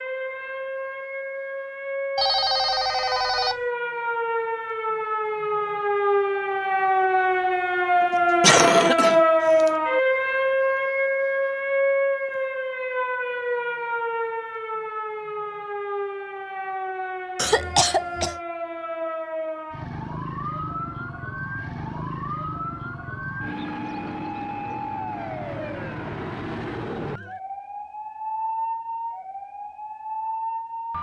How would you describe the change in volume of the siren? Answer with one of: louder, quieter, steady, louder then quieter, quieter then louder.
louder then quieter.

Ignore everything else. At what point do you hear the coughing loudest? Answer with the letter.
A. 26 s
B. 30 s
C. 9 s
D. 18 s
C.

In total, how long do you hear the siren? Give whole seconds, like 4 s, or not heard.
31 s.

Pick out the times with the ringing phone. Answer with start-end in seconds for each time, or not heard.
2.1-3.6.